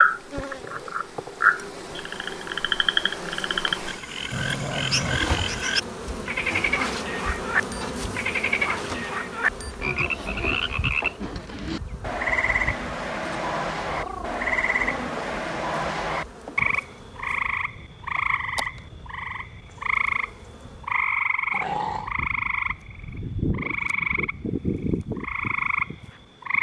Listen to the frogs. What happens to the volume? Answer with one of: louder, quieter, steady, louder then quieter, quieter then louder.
steady.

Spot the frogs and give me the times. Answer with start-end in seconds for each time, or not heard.
0.0-26.5.